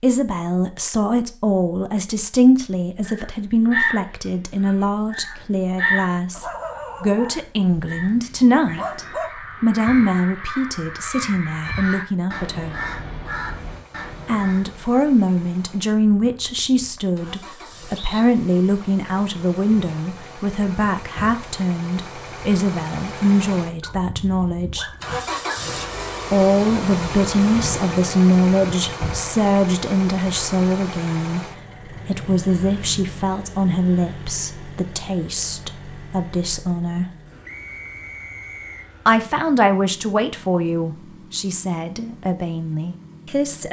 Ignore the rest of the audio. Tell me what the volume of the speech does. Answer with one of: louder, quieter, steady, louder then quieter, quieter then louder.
steady.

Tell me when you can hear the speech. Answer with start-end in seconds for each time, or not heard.
0.0-12.8, 14.2-24.9, 26.3-31.4, 32.0-37.0, 39.0-43.6.